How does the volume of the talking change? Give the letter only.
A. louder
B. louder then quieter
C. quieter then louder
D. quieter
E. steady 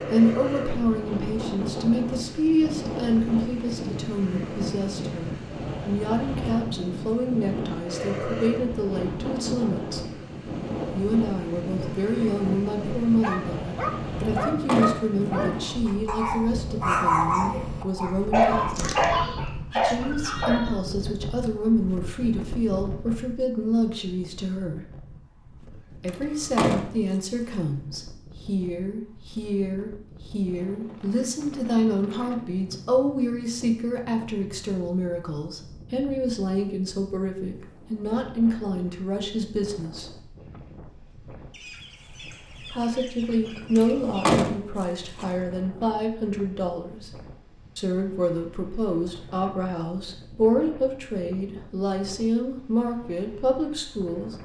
E.